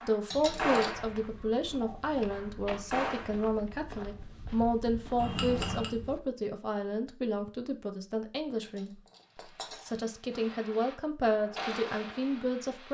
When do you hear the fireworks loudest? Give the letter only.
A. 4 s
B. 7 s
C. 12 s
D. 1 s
D.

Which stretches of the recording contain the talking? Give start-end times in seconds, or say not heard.
0.0-9.0, 9.8-12.8.